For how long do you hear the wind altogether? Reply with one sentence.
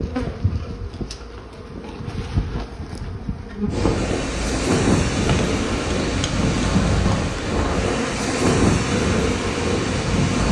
You can hear the wind for 7 seconds altogether.